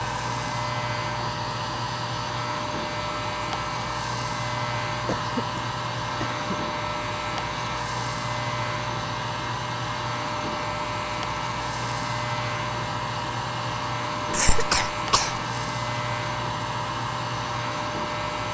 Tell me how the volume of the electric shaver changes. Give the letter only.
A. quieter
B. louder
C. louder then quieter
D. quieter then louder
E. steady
E.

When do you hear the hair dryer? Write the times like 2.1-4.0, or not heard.
0.0-18.4.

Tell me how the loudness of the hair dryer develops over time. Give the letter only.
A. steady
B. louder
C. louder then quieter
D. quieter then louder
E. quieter
A.